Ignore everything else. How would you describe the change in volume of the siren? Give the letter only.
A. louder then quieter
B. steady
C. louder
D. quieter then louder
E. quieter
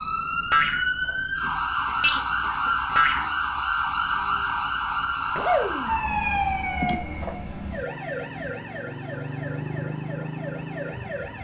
E.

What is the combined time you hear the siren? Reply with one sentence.
The siren can be heard for 11 seconds in total.